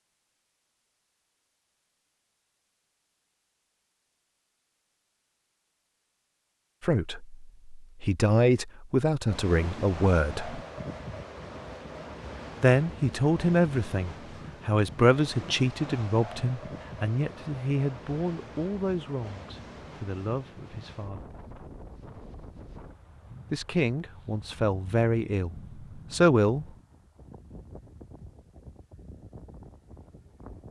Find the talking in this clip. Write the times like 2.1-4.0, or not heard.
6.8-10.6, 12.6-21.2, 23.5-26.6.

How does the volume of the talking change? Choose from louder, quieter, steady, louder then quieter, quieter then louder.
quieter then louder.